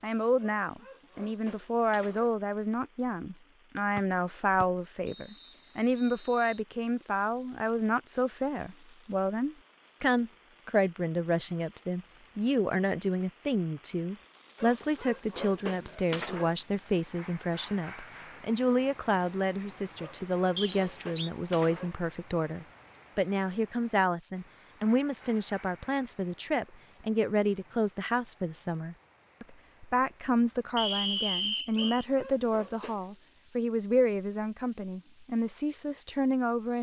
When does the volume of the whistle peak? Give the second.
31 s.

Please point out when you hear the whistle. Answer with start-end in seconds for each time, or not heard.
4.6-6.6, 20.6-21.3, 30.8-32.0.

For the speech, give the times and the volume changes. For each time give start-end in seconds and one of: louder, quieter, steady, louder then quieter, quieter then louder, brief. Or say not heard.
0.0-36.7 steady.